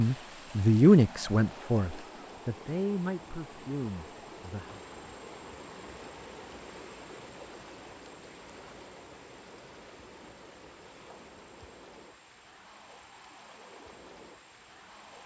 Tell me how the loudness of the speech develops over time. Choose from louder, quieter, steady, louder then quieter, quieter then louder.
quieter.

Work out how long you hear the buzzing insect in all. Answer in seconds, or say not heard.
not heard.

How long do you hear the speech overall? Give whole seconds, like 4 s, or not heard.
5 s.